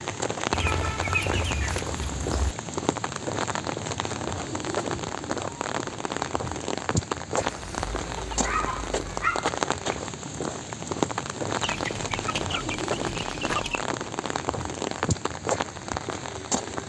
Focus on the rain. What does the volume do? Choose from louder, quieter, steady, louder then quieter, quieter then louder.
steady.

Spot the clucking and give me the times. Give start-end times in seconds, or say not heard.
0.5-2.5, 7.3-9.6, 11.6-13.8.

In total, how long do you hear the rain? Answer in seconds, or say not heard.
17 s.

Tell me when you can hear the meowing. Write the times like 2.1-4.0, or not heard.
not heard.